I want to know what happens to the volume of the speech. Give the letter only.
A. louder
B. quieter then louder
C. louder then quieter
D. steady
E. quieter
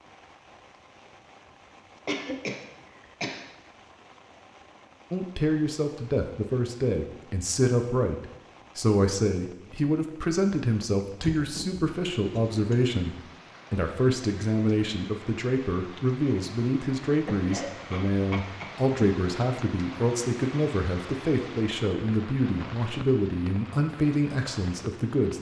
D.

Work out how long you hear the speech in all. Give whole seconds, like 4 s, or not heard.
20 s.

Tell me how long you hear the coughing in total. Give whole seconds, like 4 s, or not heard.
5 s.